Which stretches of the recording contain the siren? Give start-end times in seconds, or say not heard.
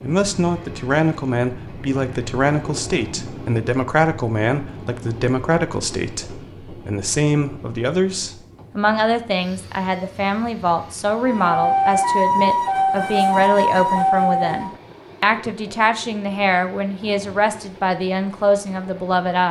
11.2-14.8.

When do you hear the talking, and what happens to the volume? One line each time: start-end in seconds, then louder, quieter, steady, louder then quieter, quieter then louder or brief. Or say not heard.
0.0-19.4 steady.